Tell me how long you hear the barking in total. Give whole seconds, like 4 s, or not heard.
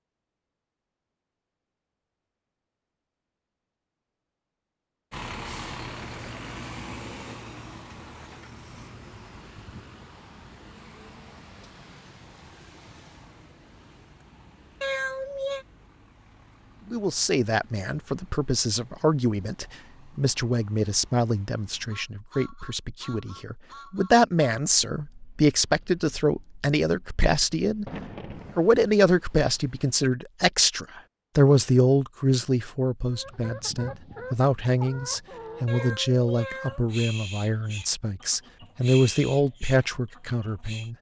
not heard.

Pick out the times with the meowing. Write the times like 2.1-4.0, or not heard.
14.8-15.7, 35.6-36.9.